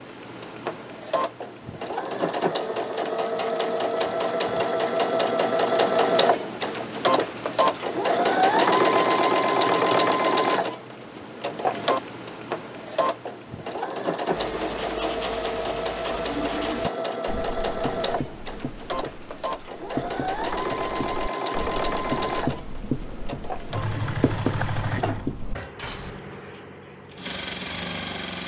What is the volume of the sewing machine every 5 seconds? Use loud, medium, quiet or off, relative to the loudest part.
medium, loud, medium, medium, medium, quiet.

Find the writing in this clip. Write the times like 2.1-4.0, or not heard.
14.3-26.2.